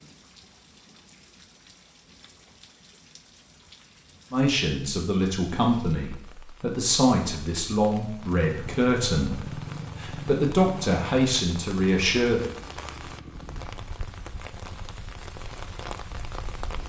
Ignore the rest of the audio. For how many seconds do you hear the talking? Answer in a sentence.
The talking can be heard for 8 seconds in total.